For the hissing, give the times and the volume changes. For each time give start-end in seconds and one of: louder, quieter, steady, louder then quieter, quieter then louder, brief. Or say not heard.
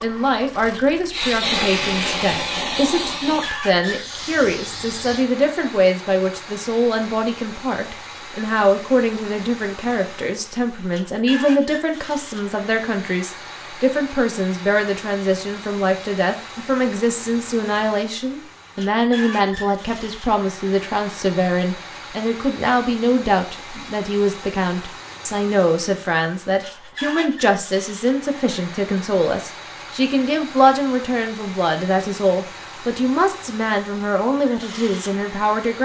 0.1-5.2 louder then quieter.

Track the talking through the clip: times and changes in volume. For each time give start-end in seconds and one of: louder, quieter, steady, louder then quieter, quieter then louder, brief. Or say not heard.
0.0-35.8 steady.